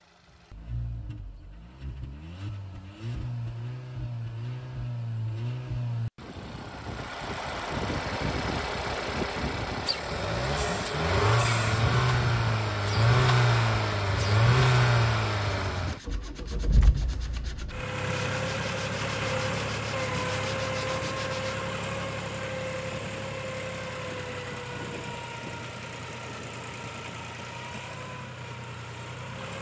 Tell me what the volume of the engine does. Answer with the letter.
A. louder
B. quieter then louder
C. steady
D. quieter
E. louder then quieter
E.